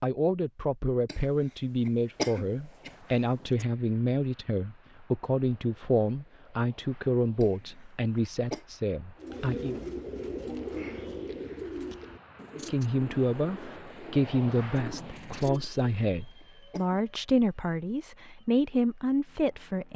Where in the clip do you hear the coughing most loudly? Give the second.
2 s.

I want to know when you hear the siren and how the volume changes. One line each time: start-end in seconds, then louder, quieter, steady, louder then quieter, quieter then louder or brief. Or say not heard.
not heard.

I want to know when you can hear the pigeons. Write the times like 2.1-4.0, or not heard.
9.2-15.9.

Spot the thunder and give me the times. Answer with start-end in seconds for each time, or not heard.
not heard.